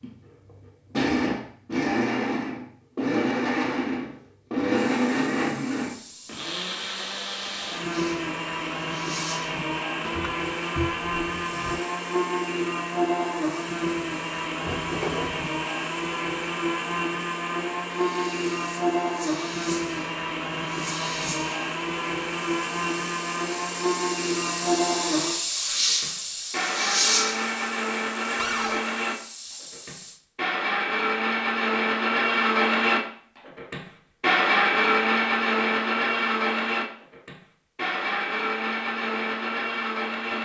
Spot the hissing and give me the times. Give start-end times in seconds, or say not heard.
4.8-30.2.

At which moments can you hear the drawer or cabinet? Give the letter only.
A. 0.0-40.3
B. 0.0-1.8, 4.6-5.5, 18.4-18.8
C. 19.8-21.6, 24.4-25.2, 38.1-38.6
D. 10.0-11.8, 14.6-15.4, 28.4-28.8
D.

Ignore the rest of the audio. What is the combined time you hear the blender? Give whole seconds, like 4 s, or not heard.
40 s.